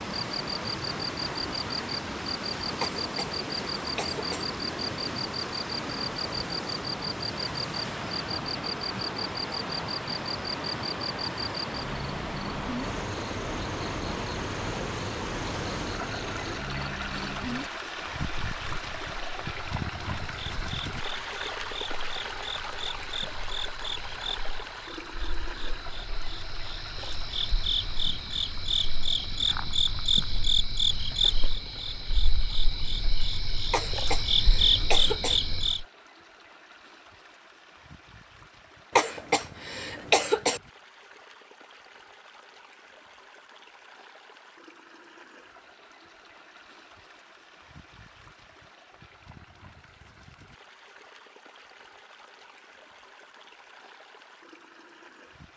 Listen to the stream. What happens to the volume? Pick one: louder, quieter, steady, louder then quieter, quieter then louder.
quieter.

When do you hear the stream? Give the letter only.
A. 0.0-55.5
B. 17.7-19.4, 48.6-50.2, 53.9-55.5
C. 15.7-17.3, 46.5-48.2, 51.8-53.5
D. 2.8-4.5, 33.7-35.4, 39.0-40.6
A.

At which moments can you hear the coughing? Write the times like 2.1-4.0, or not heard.
2.8-4.5, 33.7-35.4, 39.0-40.6.